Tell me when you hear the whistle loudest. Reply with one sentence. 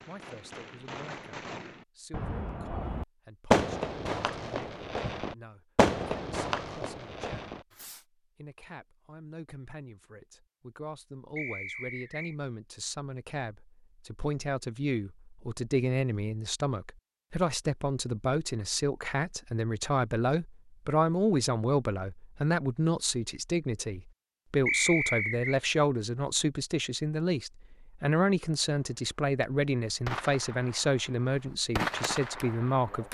The volume of the whistle peaks at 25 seconds.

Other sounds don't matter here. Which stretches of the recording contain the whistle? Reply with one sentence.
You can hear the whistle from 11.3 to 12.3 s and from 24.6 to 25.6 s.